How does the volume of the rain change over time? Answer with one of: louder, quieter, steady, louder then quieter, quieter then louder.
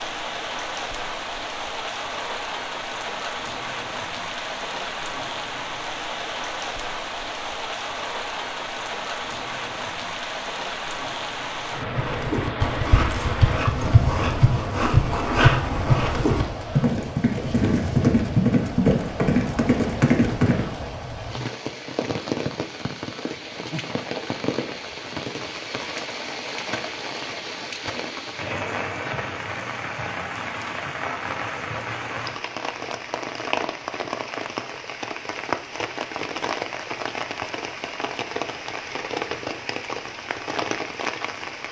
steady.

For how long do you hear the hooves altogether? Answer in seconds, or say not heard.
9 s.